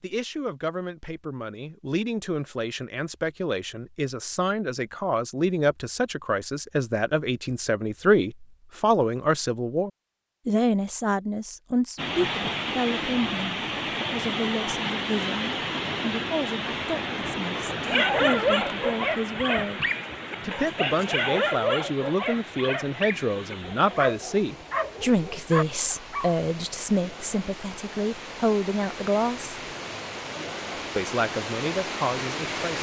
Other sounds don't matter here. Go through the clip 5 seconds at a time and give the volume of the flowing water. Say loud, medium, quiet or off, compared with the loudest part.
off, off, loud, loud, medium, medium, loud.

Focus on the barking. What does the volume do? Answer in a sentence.
The volume of the barking goes down.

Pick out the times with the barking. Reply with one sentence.
The barking can be heard from 17.8 to 26.4 s.